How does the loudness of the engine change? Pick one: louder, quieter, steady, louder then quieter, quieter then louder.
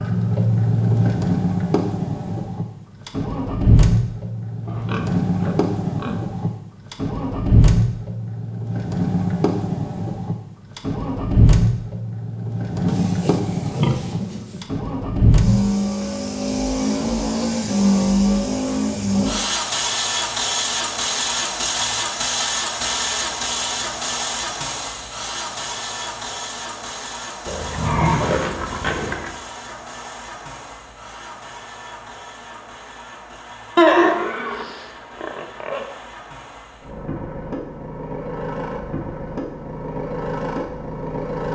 quieter.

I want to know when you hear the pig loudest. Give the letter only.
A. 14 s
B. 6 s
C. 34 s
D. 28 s
C.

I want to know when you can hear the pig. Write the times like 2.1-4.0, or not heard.
4.7-6.2, 12.8-14.7, 27.4-29.3, 33.8-35.9.